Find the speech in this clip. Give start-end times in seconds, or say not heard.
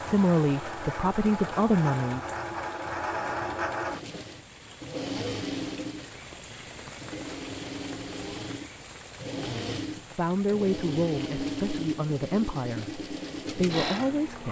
0.0-2.3, 9.3-14.4.